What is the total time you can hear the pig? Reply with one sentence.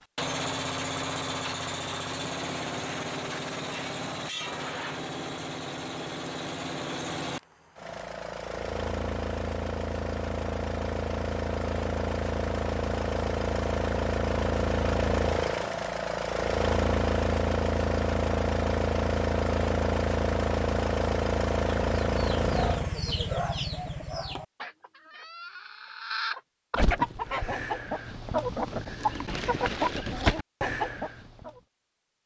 The pig can't be heard in this clip.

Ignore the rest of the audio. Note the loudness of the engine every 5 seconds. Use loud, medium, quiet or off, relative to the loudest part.
medium, medium, loud, loud, loud, off, off.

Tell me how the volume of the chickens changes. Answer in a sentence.
The loudness of the chickens goes down, then up.